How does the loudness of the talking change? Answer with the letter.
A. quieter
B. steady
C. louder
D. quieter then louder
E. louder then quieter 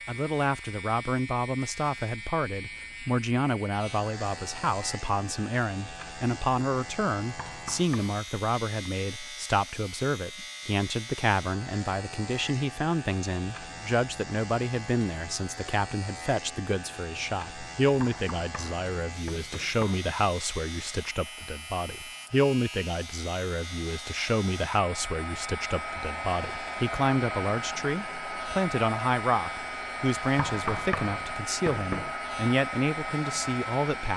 B.